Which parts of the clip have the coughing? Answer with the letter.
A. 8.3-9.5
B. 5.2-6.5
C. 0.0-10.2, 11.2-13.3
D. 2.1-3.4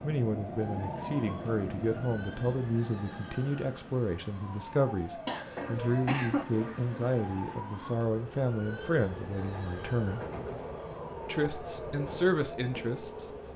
B.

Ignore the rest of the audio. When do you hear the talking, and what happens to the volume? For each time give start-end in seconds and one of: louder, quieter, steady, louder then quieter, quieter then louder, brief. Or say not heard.
0.0-10.2 steady
11.2-13.3 brief.